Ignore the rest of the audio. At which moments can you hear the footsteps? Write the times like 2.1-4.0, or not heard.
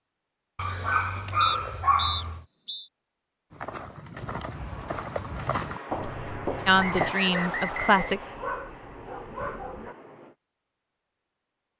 3.5-7.2.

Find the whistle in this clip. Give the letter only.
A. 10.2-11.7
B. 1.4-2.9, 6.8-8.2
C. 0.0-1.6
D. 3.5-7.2
B.